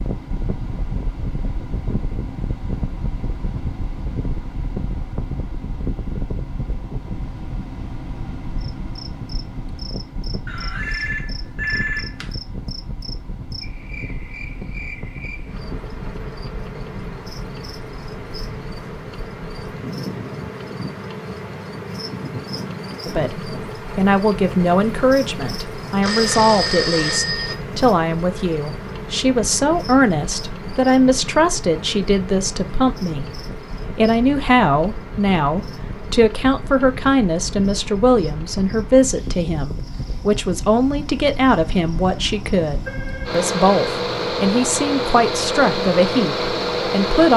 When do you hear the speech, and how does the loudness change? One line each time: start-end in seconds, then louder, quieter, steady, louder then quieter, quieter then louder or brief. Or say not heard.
23.1-47.3 steady.